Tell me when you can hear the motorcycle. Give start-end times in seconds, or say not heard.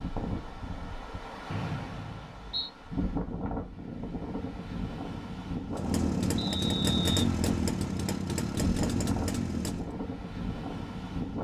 5.7-9.9.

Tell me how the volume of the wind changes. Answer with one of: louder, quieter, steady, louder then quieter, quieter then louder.
louder.